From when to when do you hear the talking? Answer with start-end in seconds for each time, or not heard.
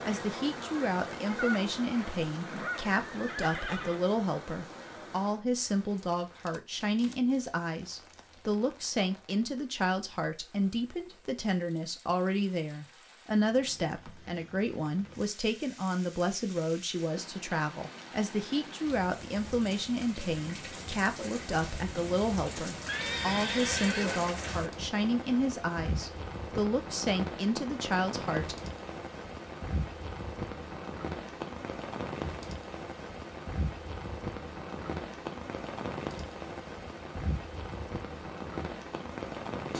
0.0-28.6.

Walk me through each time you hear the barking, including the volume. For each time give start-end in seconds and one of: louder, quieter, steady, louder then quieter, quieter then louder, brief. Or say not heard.
not heard.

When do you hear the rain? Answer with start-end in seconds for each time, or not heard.
0.0-39.7.